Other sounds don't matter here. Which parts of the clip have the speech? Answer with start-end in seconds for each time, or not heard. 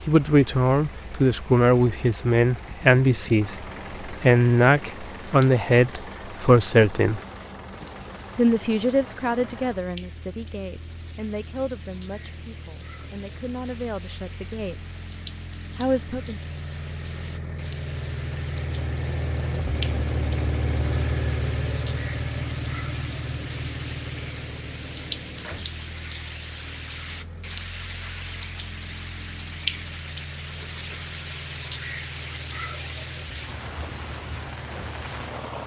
0.1-7.2, 8.3-14.8, 15.8-16.4.